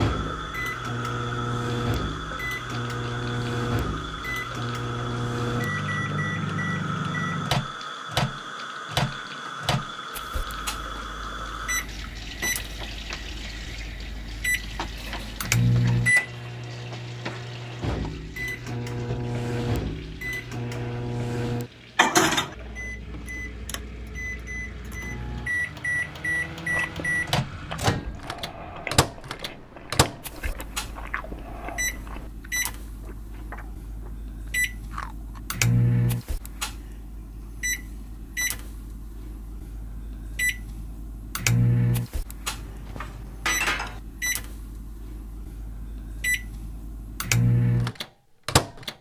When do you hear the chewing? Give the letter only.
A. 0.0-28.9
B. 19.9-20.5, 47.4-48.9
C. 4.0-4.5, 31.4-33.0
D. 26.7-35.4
D.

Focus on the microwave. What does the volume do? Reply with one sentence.
The loudness of the microwave stays about the same.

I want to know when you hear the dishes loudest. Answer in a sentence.
The volume of the dishes peaks at 44 seconds.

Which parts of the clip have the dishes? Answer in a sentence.
The dishes can be heard from 14.9 to 15.6 s and from 42.5 to 44.0 s.